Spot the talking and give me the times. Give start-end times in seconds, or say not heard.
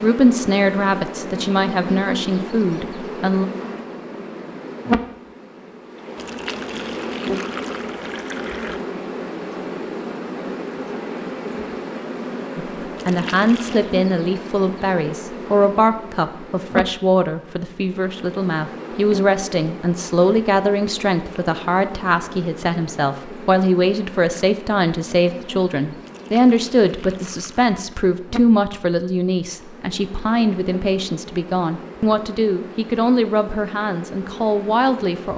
0.0-3.5, 12.6-35.3.